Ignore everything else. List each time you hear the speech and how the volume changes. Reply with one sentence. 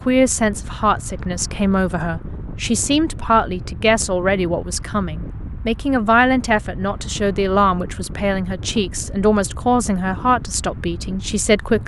You can hear the speech from 0.1 to 11.8 s, at a steady volume.